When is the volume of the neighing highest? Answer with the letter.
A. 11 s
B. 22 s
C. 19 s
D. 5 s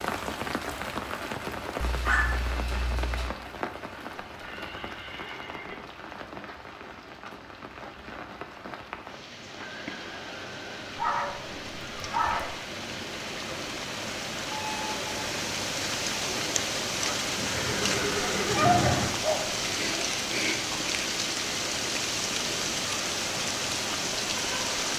C.